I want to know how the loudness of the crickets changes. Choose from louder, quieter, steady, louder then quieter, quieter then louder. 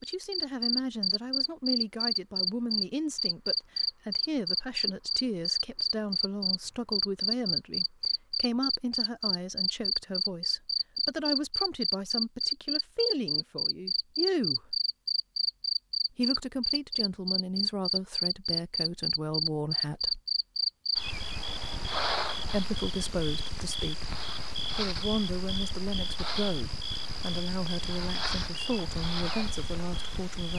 quieter.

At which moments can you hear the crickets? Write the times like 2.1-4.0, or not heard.
0.0-30.5.